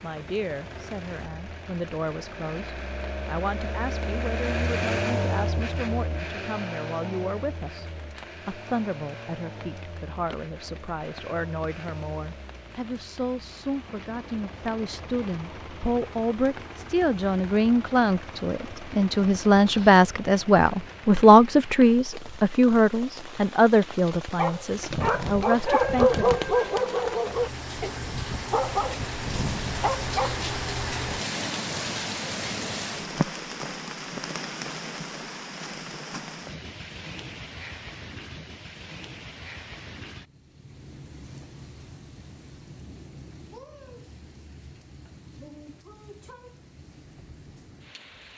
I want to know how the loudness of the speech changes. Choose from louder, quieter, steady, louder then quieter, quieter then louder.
louder.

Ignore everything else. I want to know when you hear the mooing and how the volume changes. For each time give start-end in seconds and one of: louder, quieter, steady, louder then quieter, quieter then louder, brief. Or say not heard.
not heard.